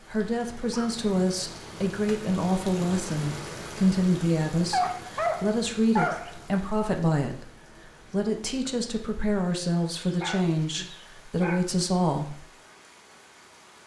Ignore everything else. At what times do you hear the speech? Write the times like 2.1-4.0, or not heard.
0.1-12.4.